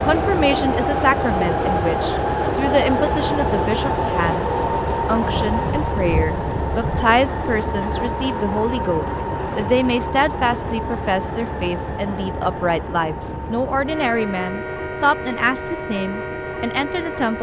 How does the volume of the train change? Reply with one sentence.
The loudness of the train goes down.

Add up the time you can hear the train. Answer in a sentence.
The train can be heard for 17 seconds in total.